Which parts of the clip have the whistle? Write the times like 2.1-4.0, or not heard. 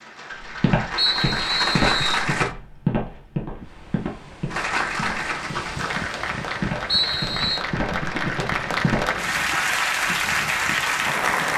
0.9-2.2, 6.8-7.7.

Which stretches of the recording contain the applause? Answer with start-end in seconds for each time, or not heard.
0.0-2.5, 4.5-11.5.